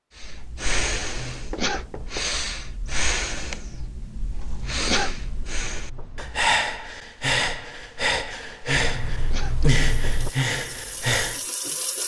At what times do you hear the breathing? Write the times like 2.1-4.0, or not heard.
0.1-11.4.